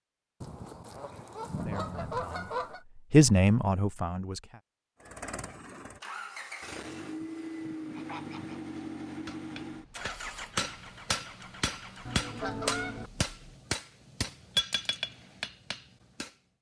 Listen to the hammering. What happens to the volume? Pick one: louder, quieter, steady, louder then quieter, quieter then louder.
louder.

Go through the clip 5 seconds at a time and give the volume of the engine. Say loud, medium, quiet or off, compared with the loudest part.
off, loud, medium, off.